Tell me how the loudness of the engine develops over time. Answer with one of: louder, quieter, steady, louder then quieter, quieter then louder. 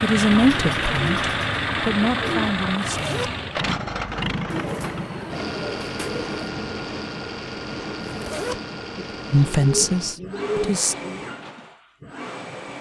quieter.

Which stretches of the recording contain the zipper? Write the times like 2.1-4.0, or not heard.
2.9-3.4, 8.0-8.6.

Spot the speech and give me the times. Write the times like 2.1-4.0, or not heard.
0.0-3.2, 9.3-10.9.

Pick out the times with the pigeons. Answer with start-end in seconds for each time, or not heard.
0.3-2.5, 4.5-6.3, 8.9-11.2.